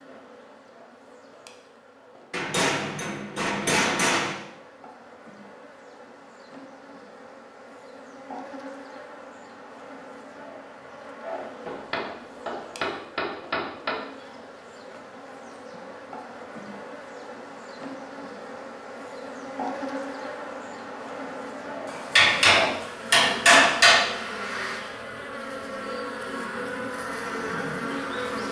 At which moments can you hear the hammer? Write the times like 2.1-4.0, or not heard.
2.3-4.3, 11.7-14.0, 21.9-24.1.